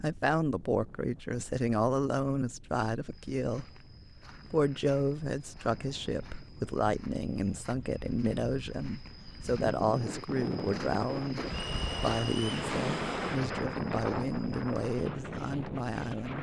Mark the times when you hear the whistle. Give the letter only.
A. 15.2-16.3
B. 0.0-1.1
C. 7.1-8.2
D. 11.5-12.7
D.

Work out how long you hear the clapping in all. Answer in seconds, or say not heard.
not heard.